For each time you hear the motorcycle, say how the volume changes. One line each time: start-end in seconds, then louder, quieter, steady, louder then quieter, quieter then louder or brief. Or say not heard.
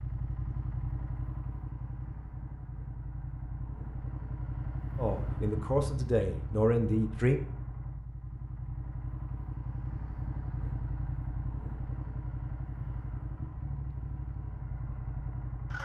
0.0-15.8 steady.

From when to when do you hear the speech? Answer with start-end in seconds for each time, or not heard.
5.0-7.4.